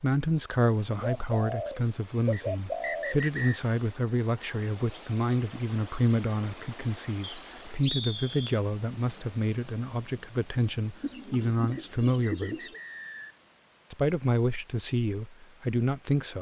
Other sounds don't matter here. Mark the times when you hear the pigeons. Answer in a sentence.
The pigeons can be heard from 0.9 to 3.2 s and from 11.0 to 12.8 s.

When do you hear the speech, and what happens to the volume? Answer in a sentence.
The speech can be heard from 0.0 to 12.7 s, at a steady volume; and briefly from 13.9 to 16.3 s.